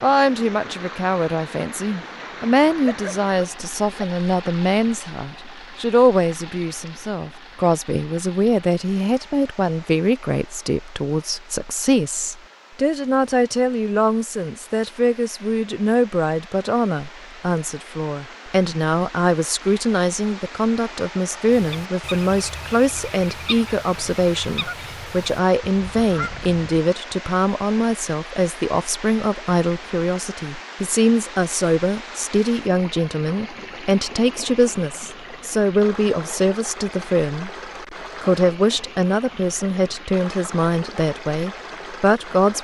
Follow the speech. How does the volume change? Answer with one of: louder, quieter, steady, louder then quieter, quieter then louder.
steady.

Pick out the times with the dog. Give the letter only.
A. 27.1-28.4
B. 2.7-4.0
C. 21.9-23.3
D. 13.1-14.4
B.